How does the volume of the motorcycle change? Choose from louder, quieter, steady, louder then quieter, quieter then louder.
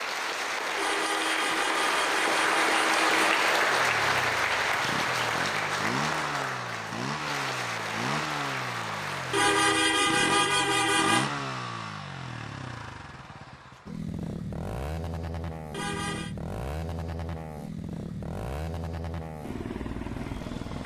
steady.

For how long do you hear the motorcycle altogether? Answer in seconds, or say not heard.
17 s.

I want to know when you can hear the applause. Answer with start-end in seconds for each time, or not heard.
0.0-9.6.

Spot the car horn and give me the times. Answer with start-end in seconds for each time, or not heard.
0.8-3.3, 9.3-11.3, 15.7-16.4.